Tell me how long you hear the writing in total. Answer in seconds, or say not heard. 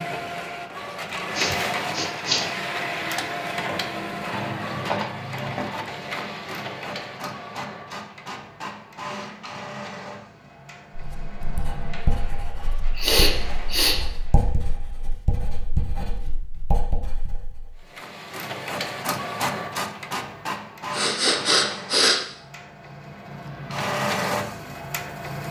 7 s.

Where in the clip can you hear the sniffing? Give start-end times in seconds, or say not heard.
1.4-2.5, 12.9-13.9, 20.9-22.2.